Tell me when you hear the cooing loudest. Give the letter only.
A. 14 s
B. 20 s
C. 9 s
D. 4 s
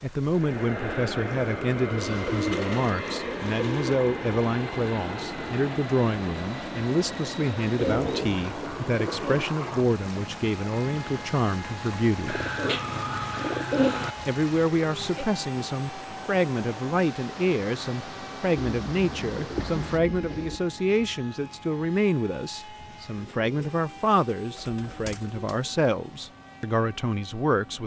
A.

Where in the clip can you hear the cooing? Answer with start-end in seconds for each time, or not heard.
1.9-4.0, 7.8-9.4, 12.2-14.2, 18.6-20.6, 23.1-25.8.